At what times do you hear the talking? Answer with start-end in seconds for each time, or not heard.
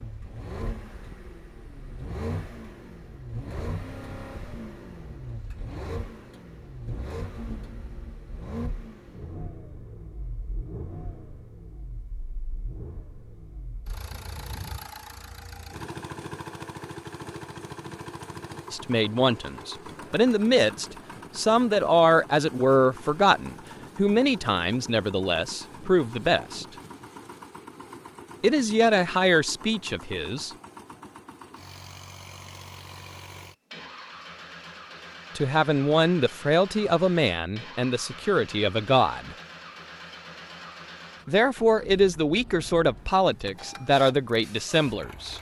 18.7-26.6, 28.4-30.5, 35.4-39.4, 41.2-45.3.